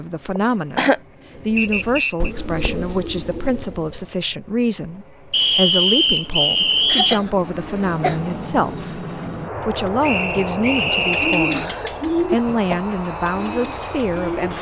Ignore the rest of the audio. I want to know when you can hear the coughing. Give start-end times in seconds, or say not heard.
0.3-1.0, 6.8-8.2, 10.8-12.8.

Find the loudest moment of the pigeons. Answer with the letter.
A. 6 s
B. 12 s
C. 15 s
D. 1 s
B.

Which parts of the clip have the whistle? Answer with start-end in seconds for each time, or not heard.
1.6-2.3, 5.3-7.2, 10.0-11.7.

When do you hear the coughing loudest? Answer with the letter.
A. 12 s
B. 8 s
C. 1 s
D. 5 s
C.